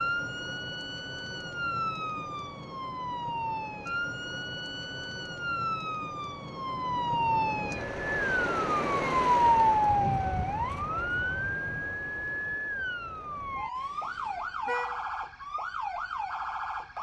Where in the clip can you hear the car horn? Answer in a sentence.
The car horn can be heard from 13.8 to 15.0 s.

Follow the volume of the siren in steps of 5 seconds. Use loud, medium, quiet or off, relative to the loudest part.
medium, loud, medium, medium.